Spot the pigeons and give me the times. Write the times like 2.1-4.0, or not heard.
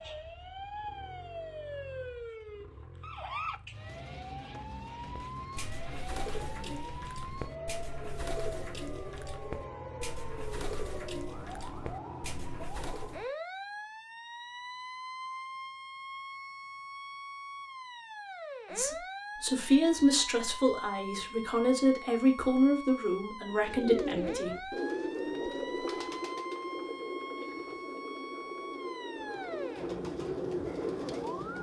5.0-13.2, 23.5-31.5.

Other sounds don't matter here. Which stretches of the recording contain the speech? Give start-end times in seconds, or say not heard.
18.7-24.7.